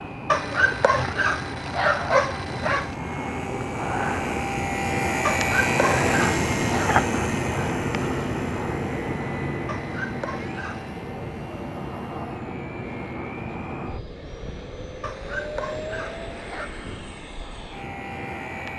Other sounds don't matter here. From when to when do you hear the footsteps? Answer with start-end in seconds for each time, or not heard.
not heard.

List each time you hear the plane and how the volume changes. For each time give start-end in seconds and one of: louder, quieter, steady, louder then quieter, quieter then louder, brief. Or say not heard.
0.0-18.7 louder then quieter.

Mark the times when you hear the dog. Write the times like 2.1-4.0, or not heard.
0.2-3.0, 5.2-6.9, 9.7-11.1, 15.0-16.7.